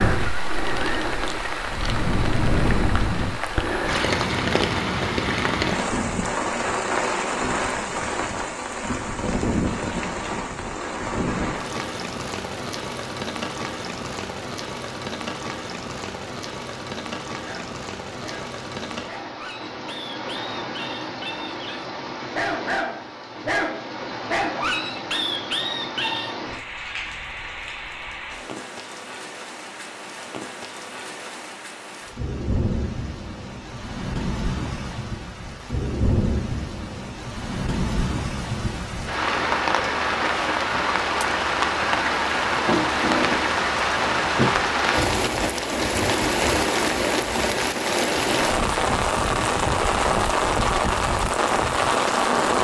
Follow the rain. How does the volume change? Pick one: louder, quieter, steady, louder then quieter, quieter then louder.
quieter then louder.